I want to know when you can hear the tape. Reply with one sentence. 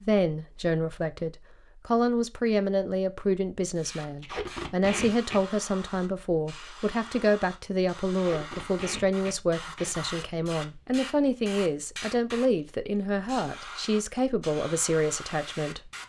You can hear the tape from 4.2 to 5.4 s and from 8.1 to 9.9 s.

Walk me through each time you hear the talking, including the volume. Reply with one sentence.
You can hear the talking from 0.0 to 15.9 s, at a steady volume.